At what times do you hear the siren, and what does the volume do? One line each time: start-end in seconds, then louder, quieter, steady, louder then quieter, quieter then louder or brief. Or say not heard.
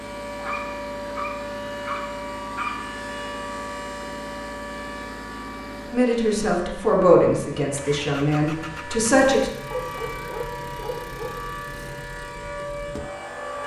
0.0-13.6 quieter then louder.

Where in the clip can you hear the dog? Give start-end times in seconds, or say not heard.
0.3-2.8, 9.7-11.4.